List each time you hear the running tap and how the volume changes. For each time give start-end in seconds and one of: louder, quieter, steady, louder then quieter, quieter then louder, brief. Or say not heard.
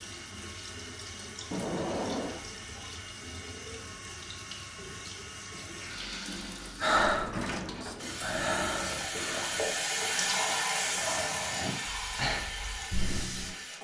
0.0-13.7 louder.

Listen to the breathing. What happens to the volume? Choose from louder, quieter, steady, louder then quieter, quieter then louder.
quieter then louder.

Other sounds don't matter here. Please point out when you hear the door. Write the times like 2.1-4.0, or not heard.
1.5-2.5, 7.2-8.3.